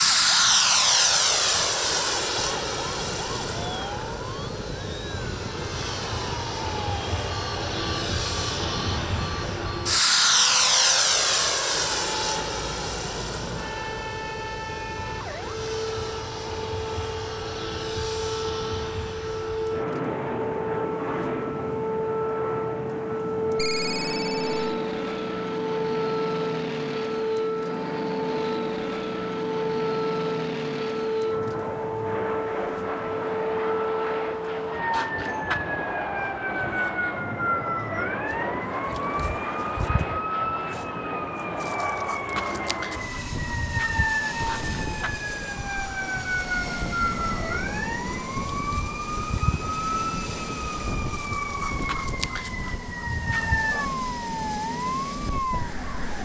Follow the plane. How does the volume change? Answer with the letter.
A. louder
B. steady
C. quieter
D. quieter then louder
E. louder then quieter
C.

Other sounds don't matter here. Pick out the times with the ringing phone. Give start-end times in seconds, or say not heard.
23.6-24.8.